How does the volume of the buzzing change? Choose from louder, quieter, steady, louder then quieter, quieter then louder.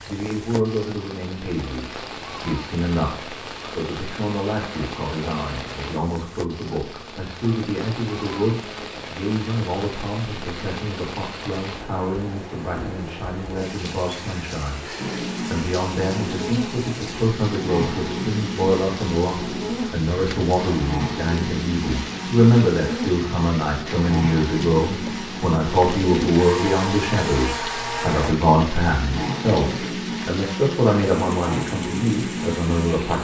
steady.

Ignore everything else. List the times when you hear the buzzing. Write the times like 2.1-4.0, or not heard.
14.9-33.1.